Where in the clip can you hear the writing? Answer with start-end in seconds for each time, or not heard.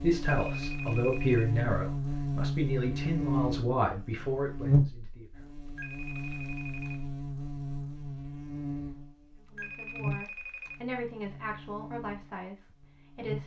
not heard.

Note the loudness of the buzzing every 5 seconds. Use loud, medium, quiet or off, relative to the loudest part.
loud, medium, medium.